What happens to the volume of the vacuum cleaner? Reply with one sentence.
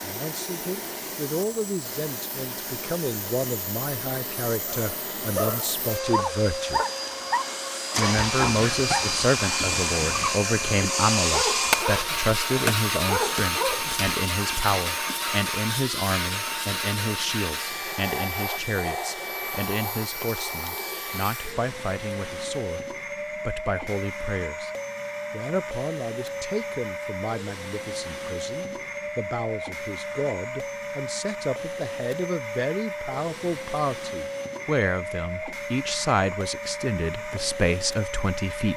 The volume of the vacuum cleaner goes up, then down.